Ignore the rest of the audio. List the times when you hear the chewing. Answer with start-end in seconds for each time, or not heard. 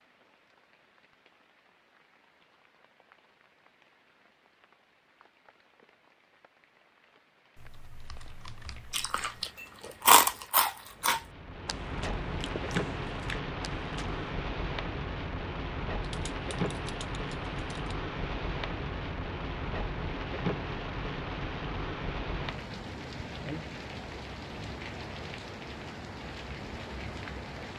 8.9-14.2.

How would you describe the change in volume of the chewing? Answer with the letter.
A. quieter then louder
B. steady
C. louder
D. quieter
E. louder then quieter
D.